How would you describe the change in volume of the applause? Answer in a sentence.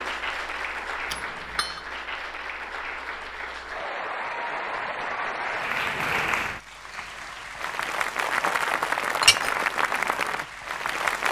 The volume of the applause goes up.